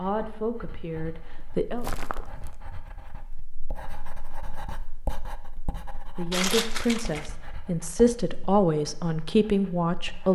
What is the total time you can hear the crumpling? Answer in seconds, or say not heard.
2 s.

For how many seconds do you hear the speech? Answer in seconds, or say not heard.
6 s.